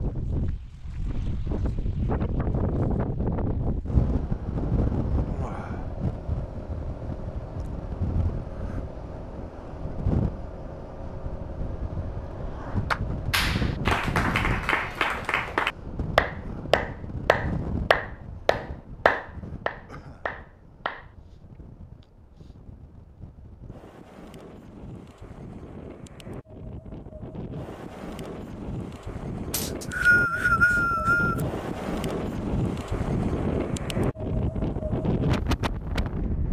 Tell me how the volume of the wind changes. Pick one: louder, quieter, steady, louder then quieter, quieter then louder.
quieter then louder.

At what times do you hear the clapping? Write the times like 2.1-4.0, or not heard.
12.9-21.1.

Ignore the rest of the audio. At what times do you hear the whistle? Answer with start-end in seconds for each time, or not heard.
29.5-31.4.